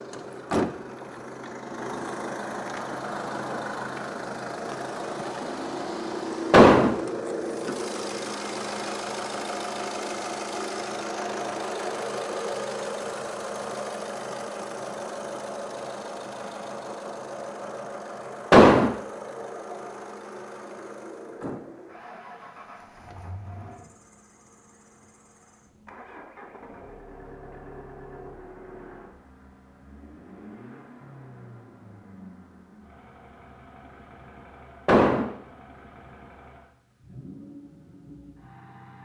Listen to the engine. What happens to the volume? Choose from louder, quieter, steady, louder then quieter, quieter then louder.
quieter.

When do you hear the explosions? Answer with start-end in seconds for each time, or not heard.
6.5-7.0, 18.5-18.9, 34.9-35.3.